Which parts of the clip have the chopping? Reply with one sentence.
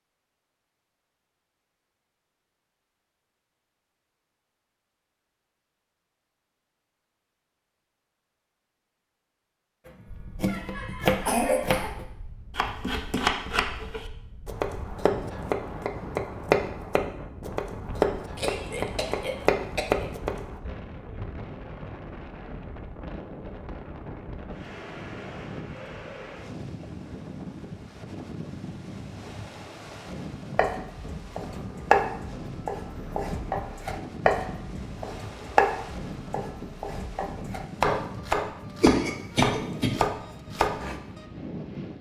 You can hear the chopping from 9.8 to 20.6 s and from 30.6 to 41.2 s.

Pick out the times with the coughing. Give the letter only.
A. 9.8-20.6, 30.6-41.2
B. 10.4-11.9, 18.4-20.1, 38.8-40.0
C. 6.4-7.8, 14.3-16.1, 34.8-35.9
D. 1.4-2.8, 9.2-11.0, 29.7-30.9
B.